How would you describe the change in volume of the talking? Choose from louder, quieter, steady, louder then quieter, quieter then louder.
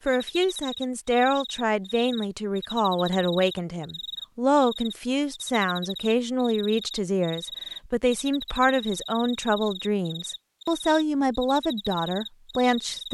steady.